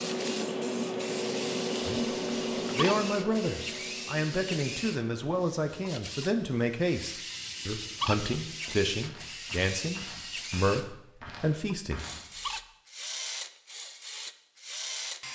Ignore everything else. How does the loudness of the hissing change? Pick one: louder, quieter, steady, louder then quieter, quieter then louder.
quieter.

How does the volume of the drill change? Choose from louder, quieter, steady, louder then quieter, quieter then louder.
steady.